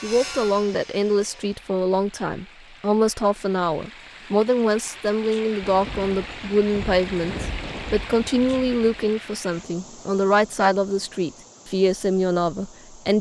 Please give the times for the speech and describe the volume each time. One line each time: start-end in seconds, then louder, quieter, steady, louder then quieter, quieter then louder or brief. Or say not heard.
0.0-13.1 steady.